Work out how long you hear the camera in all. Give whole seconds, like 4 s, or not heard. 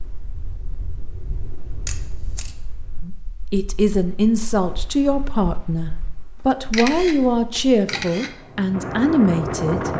2 s.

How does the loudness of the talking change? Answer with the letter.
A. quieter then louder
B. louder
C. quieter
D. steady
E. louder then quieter
D.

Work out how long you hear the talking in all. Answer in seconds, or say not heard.
7 s.